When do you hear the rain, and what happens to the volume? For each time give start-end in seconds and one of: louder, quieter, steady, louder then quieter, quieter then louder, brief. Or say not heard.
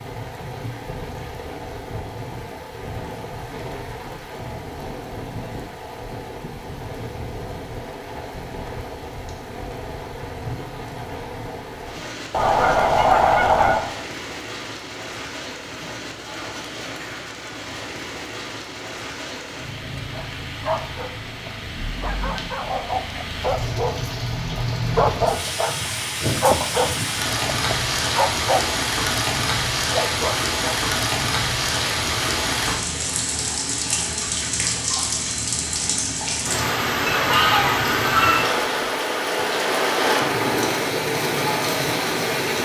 0.0-42.5 louder.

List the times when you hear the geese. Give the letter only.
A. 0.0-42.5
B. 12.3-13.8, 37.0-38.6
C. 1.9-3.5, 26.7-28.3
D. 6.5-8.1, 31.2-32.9
B.